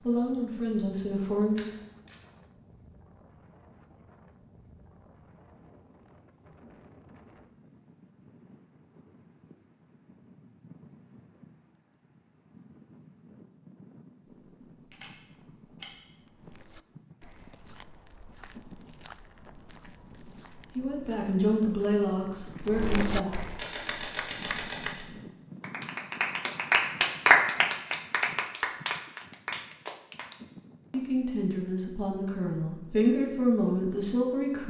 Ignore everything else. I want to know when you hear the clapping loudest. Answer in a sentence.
The volume of the clapping peaks at 27 seconds.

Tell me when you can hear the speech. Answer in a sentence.
The speech can be heard from 0.0 to 1.7 s, from 20.7 to 23.4 s and from 30.9 to 34.6 s.